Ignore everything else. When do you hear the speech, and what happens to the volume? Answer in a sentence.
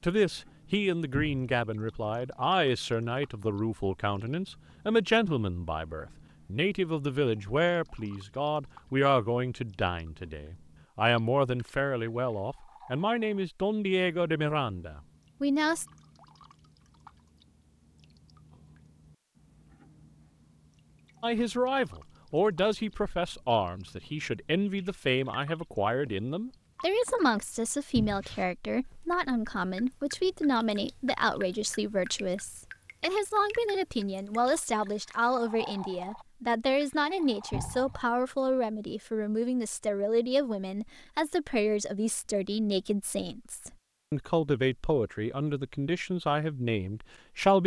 You can hear the speech from 0.0 to 15.8 s, at a steady volume; and from 21.2 to 47.6 s, at a steady volume.